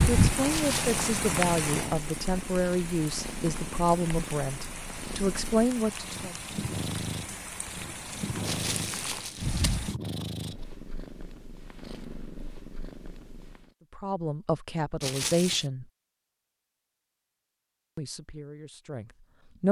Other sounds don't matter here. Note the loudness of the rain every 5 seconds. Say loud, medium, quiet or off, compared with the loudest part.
loud, medium, off, off.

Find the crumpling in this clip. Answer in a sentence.
The crumpling can be heard from 0.5 to 1.0 s, from 8.4 to 9.8 s and from 15.0 to 15.7 s.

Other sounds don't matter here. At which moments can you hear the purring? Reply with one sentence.
You can hear the purring from 0.1 to 13.7 s.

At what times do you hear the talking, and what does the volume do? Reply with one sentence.
You can hear the talking from 0.0 to 6.3 s, at a steady volume; briefly from 13.9 to 15.8 s; and briefly from 17.9 to 19.6 s.